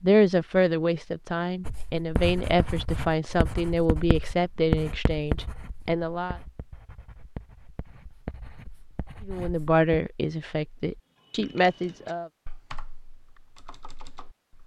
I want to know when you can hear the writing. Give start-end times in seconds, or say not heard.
1.6-9.8.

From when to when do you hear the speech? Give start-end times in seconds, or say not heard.
0.0-6.4, 9.2-12.3.